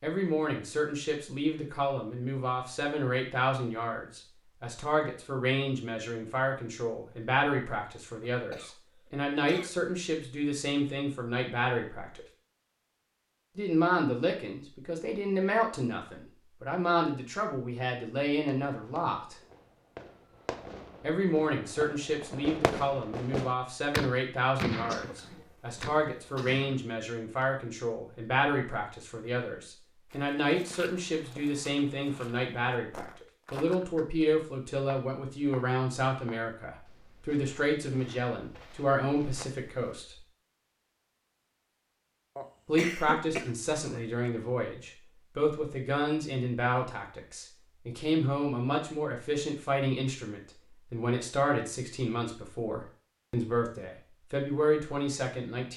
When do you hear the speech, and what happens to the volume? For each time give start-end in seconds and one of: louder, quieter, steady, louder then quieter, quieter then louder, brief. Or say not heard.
0.0-12.2 steady
13.6-19.4 steady
21.0-40.2 steady
42.6-55.7 steady.